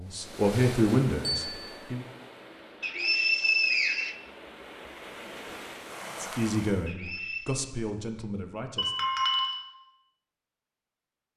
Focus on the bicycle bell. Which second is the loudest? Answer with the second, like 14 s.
9 s.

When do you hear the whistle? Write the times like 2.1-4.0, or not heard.
2.8-4.2, 6.8-7.6.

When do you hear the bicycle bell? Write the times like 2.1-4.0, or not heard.
1.2-1.8, 8.8-9.6.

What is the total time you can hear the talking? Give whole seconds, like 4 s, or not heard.
5 s.